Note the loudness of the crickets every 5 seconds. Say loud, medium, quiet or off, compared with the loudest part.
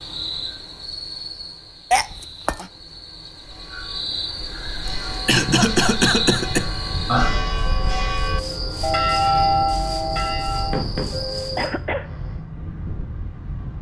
medium, loud, loud.